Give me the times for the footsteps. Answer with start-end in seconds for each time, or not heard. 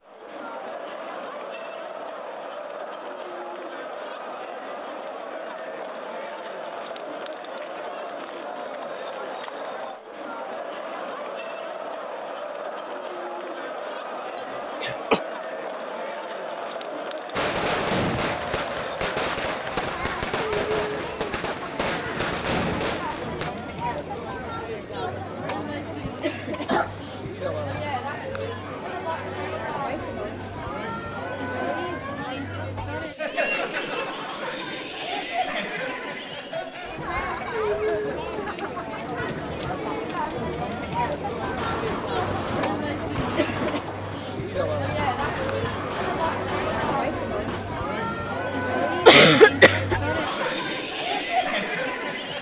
not heard.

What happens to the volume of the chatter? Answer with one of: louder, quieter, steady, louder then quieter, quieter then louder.
louder.